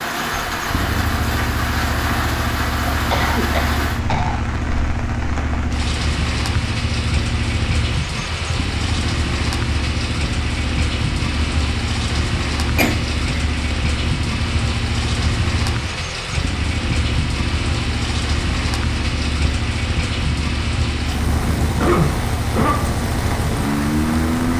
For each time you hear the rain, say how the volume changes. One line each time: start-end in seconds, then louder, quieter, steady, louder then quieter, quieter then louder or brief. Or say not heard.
0.0-24.5 steady.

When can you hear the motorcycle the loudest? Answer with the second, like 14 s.
24 s.